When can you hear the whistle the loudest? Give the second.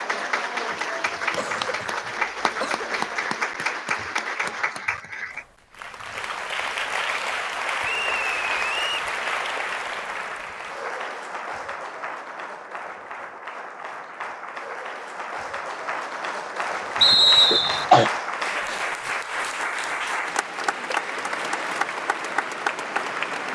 17 s.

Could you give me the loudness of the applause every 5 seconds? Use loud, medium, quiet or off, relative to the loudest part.
loud, loud, medium, loud, loud.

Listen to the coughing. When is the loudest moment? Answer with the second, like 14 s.
18 s.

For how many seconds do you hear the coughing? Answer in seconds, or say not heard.
2 s.